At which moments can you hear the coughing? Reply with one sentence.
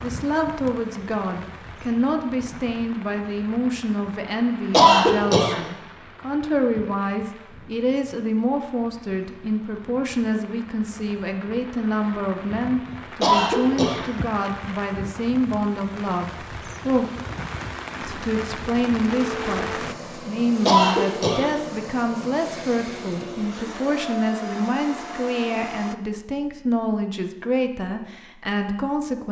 The coughing can be heard from 4.7 to 5.6 s, from 13.2 to 14.1 s and from 20.6 to 21.5 s.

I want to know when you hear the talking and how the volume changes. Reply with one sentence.
You can hear the talking from 0.0 to 17.1 s, at a steady volume; and from 18.0 to 29.2 s, at a steady volume.